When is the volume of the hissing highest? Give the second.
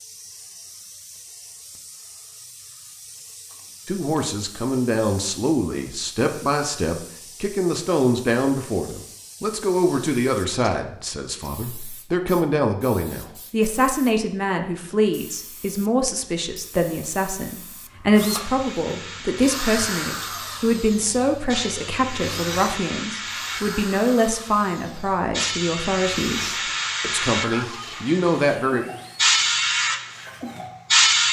31 s.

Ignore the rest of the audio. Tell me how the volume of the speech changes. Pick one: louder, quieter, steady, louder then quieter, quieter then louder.
steady.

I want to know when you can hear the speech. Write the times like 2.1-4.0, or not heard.
3.9-28.9.